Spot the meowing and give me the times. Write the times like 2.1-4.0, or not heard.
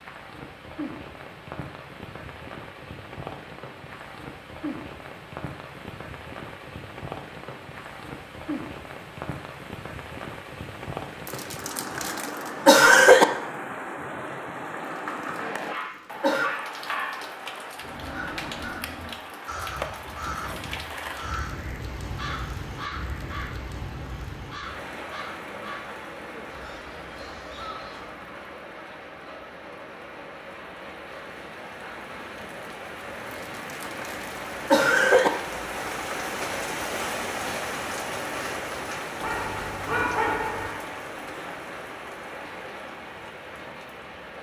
not heard.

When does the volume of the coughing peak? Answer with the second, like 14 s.
13 s.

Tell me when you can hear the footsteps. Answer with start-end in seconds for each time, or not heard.
not heard.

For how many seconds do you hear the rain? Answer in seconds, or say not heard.
44 s.